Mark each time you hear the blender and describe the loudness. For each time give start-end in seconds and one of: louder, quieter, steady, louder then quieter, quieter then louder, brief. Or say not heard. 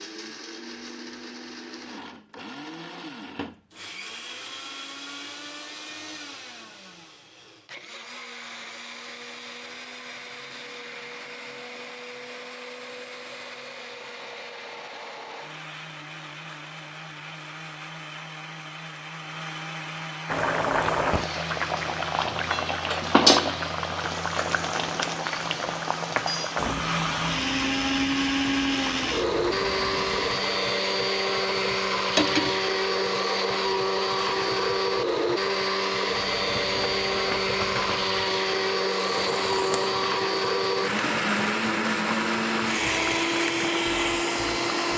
0.0-44.9 louder.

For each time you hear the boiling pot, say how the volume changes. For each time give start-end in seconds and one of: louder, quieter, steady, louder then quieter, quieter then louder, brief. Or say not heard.
20.2-44.9 quieter.